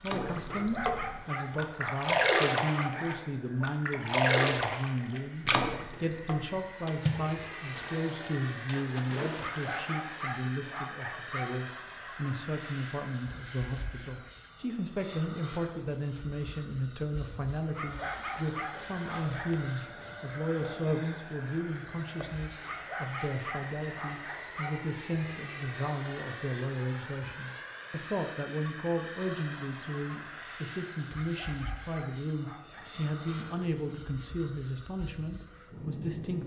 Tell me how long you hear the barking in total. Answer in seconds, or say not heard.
11 s.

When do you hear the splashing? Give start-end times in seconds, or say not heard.
0.0-10.1.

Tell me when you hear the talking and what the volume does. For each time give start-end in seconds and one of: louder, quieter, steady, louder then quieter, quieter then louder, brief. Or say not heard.
0.0-36.4 steady.